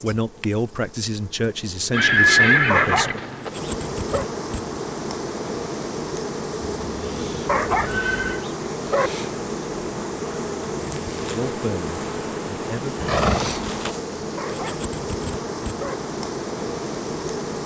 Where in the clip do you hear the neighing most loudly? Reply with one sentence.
The volume of the neighing peaks at 2 seconds.